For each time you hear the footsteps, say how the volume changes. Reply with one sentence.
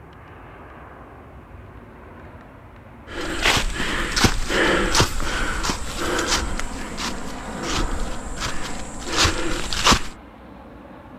The footsteps can be heard from 3.1 to 10.2 s, getting quieter then louder.